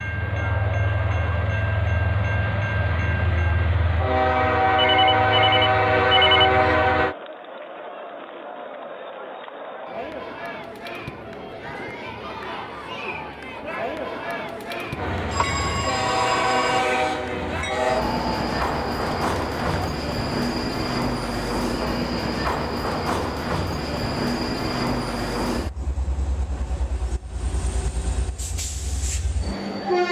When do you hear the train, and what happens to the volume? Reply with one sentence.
You can hear the train from 0.0 to 7.2 s, getting louder; and from 14.9 to 30.0 s, getting quieter.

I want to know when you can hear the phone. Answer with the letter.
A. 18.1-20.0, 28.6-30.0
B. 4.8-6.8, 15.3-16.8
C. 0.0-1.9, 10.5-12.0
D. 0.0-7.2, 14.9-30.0
B.